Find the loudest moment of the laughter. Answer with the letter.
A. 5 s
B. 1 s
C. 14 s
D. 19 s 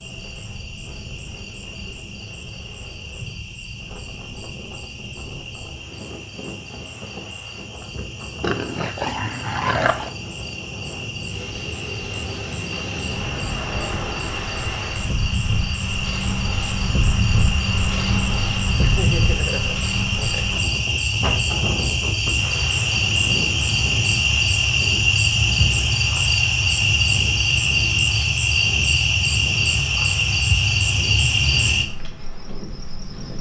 D.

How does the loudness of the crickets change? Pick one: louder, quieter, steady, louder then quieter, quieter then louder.
louder.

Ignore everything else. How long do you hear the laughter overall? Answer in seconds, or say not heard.
2 s.